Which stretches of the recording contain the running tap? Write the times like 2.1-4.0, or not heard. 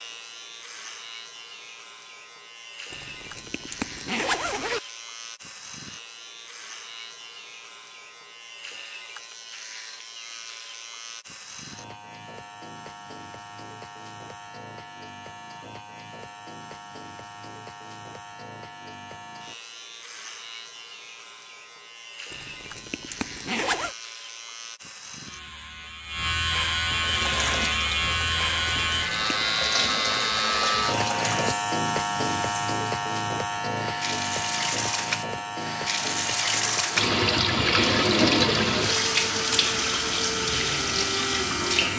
27.0-41.9.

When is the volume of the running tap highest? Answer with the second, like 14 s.
38 s.